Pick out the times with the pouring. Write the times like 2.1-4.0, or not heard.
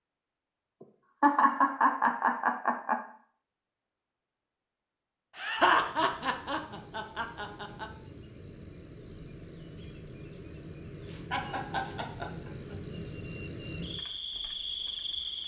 not heard.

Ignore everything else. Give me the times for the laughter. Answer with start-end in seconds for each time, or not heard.
1.2-3.0, 5.3-7.8, 11.3-12.8.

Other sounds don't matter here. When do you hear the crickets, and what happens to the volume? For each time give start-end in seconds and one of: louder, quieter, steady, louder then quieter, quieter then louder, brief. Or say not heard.
5.5-15.4 louder.